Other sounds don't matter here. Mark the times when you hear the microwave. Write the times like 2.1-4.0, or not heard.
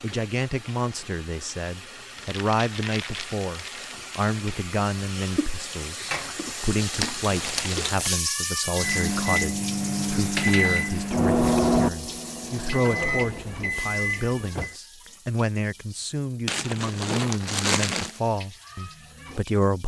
8.8-14.8.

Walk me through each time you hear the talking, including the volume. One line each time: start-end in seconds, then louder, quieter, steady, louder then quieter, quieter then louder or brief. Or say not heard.
0.0-19.8 steady.